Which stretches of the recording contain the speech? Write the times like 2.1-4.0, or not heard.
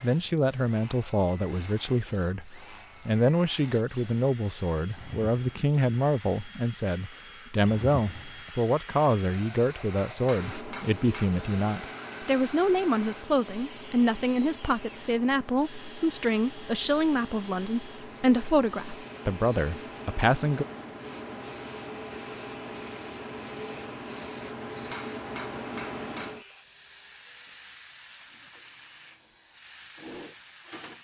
0.0-20.6.